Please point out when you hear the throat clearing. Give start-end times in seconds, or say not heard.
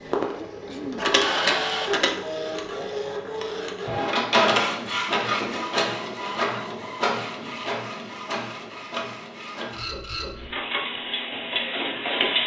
0.3-1.6.